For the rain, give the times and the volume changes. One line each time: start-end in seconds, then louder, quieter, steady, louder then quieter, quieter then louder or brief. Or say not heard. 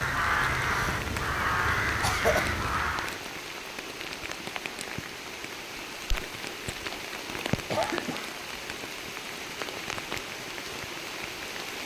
0.0-11.8 steady.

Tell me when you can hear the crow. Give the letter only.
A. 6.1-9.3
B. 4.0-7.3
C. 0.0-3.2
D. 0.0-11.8
C.